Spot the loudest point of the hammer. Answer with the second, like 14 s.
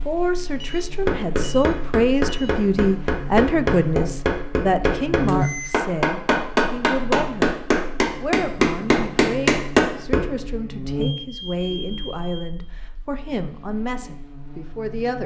10 s.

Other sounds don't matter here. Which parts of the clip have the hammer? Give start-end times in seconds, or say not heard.
1.1-10.3.